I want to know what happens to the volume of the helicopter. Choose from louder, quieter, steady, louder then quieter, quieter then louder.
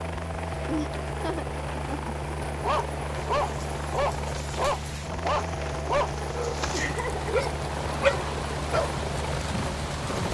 steady.